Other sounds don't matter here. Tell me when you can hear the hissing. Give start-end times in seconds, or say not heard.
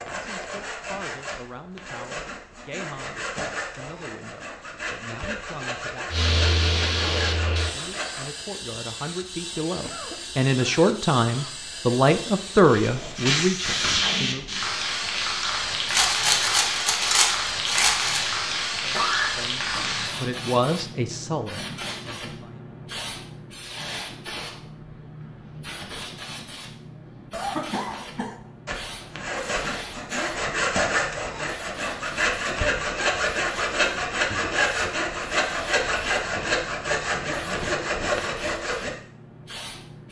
6.1-40.0.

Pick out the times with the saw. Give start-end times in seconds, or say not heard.
0.0-8.3, 28.6-38.9.